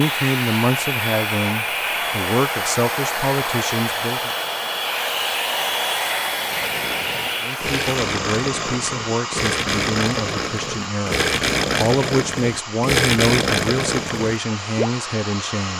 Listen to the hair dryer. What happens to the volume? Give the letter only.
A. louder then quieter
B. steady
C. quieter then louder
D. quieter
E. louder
D.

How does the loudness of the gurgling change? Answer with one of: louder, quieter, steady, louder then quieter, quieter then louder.
louder.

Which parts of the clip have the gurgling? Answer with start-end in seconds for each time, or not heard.
6.3-14.9.